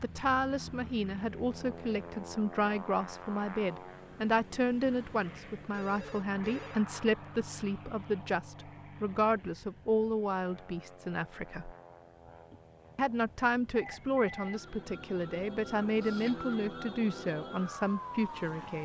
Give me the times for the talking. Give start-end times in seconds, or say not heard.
0.0-11.8, 12.9-18.8.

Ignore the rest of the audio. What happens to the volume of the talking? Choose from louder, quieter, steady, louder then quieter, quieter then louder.
steady.